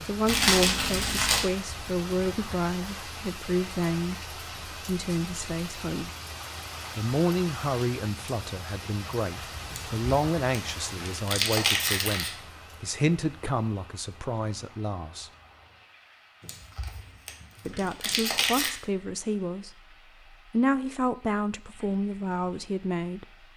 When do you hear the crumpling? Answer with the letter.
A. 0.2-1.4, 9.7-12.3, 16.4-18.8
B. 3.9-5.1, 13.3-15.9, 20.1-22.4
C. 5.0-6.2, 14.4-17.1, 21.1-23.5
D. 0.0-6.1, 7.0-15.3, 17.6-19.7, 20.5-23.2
A.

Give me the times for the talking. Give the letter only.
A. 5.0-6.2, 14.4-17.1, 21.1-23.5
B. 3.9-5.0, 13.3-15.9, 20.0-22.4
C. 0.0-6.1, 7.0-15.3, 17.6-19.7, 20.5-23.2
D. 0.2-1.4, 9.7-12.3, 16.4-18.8
C.